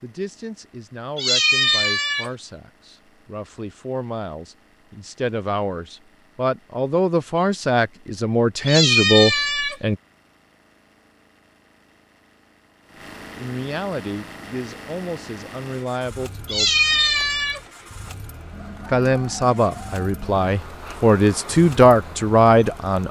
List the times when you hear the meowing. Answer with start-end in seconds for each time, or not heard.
1.1-2.3, 8.7-9.8, 16.4-17.6.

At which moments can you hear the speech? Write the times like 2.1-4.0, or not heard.
0.0-9.9, 13.3-16.7, 18.9-23.0.